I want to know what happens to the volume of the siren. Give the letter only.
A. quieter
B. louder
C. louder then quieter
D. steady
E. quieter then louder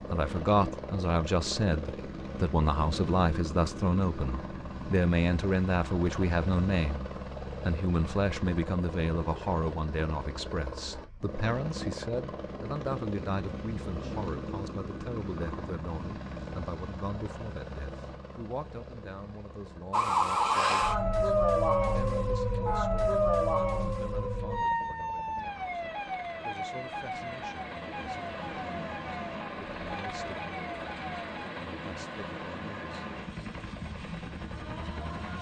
A.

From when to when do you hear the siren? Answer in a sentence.
The siren can be heard from 19.9 to 31.5 s.